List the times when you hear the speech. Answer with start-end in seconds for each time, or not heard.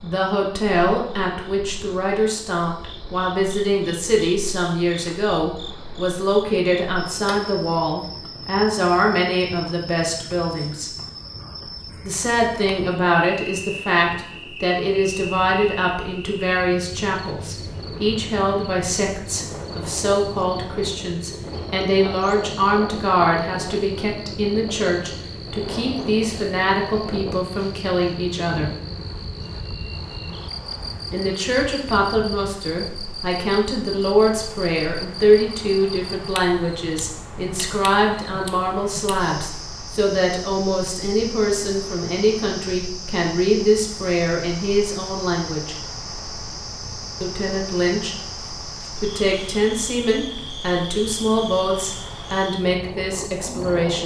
0.0-10.9, 12.0-28.7, 31.1-45.8, 47.2-48.4, 49.0-54.0.